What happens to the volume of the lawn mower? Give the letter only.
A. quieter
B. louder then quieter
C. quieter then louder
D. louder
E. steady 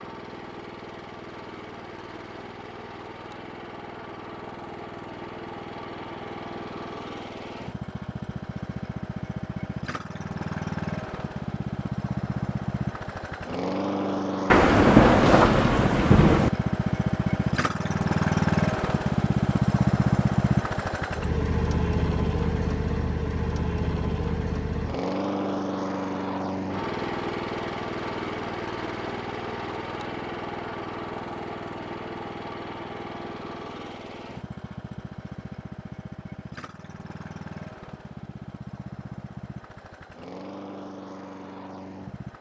B.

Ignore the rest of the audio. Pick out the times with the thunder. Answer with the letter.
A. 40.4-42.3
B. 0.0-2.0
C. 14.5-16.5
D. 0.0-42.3
C.